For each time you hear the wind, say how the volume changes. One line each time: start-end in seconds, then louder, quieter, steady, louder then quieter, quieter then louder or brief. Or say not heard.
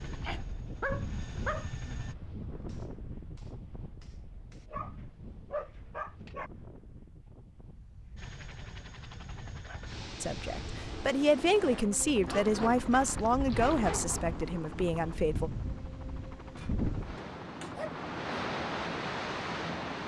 0.0-20.0 quieter then louder.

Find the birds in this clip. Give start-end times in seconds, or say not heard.
not heard.